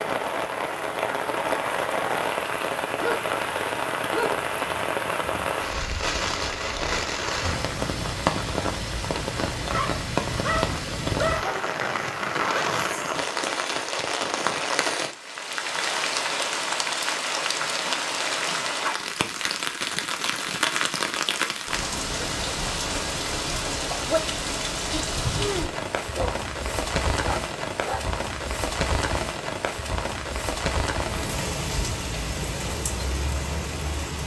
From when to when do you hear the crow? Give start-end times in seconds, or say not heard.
not heard.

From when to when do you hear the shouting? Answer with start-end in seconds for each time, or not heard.
not heard.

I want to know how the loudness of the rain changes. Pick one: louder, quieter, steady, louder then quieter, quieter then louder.
steady.